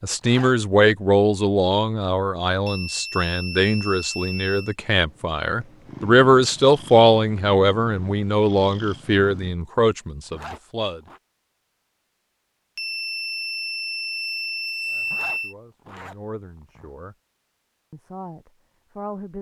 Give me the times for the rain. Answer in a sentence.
The rain can't be heard in this clip.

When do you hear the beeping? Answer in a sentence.
The beeping can be heard from 2.6 to 4.8 s and from 12.8 to 15.6 s.